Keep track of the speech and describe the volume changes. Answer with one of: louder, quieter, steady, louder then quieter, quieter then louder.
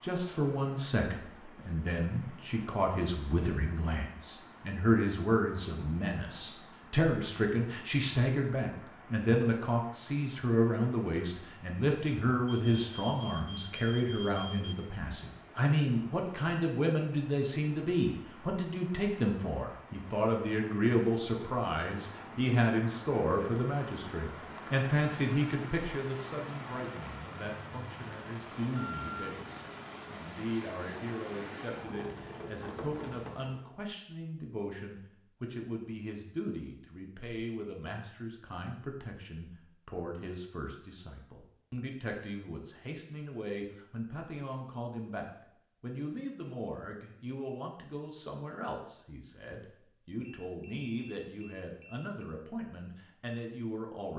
quieter.